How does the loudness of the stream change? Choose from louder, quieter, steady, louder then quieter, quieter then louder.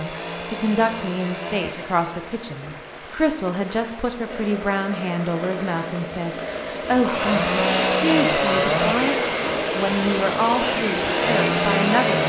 louder.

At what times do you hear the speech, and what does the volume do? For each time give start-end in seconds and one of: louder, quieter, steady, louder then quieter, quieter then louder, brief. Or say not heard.
0.0-12.2 steady.